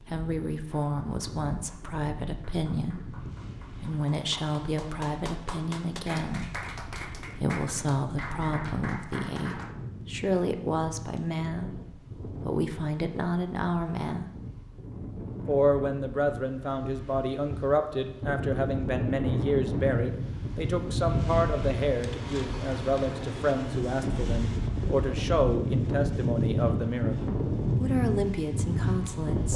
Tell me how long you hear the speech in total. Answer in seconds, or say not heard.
28 s.